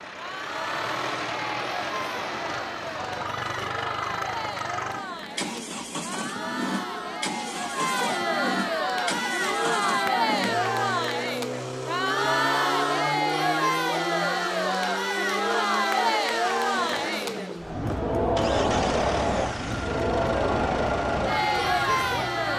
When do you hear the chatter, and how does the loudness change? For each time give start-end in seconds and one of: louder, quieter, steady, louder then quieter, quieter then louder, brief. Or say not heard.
0.0-22.5 louder.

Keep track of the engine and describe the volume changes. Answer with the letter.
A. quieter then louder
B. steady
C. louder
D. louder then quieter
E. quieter
B.